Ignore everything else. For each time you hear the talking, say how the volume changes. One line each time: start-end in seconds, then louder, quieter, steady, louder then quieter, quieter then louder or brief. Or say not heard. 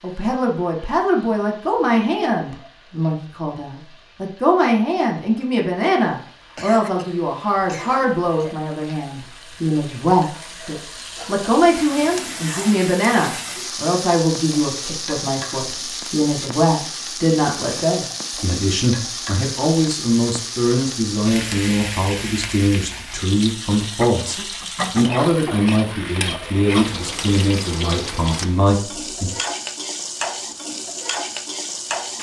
0.0-29.3 steady.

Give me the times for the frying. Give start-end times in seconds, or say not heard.
0.0-32.1.